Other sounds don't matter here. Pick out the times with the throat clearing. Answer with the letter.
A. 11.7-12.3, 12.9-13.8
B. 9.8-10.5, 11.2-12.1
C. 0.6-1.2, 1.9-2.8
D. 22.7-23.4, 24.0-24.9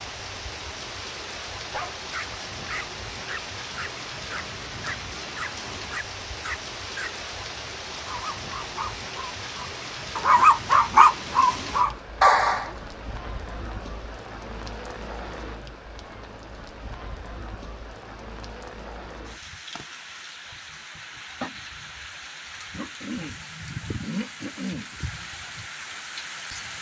D.